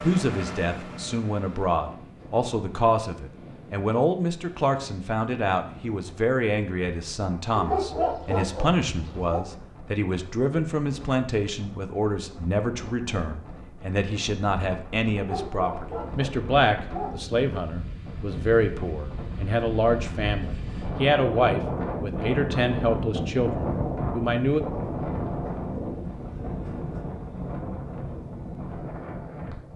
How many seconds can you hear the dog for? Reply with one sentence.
You can hear the dog for 4 seconds altogether.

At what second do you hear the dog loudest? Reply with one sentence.
The loudest moment of the dog is at 8 seconds.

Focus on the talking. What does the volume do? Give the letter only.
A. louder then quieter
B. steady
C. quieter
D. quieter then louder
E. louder
B.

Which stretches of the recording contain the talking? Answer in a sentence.
The talking can be heard from 0.0 to 24.6 s.